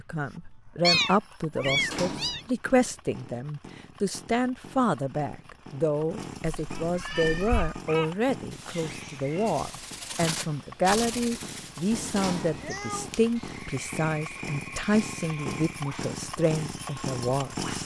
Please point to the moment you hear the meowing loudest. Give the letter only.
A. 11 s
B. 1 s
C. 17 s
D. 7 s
B.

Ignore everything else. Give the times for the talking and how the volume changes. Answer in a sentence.
You can hear the talking from 0.0 to 17.8 s, at a steady volume.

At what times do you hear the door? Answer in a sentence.
You can hear the door from 1.6 to 2.5 s and from 11.9 to 12.7 s.